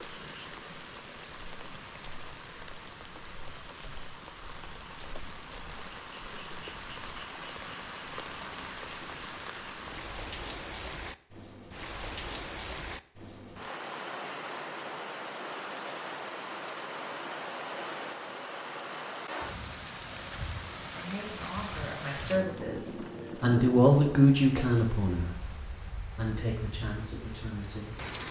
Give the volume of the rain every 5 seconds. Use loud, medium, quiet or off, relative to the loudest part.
medium, loud, loud, loud, loud, medium.